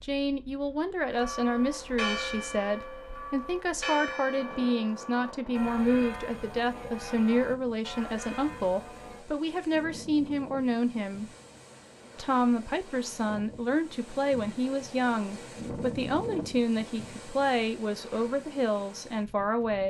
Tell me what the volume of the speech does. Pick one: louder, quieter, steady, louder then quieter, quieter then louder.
steady.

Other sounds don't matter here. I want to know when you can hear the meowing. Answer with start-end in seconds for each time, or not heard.
not heard.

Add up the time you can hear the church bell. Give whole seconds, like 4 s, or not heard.
8 s.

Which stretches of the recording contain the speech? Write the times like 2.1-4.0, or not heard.
0.0-11.3, 12.2-19.8.